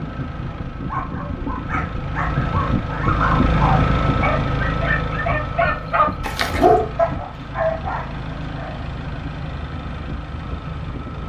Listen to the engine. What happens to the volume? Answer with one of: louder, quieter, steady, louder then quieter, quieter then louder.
louder then quieter.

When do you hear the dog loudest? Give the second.
7 s.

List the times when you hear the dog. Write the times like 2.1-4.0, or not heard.
0.8-8.8.